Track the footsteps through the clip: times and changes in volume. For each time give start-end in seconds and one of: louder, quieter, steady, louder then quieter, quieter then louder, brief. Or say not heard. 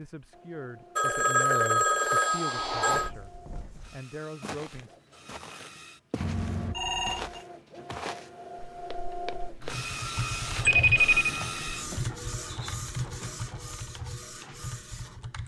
2.8-9.8 louder then quieter.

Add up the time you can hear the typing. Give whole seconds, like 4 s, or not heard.
6 s.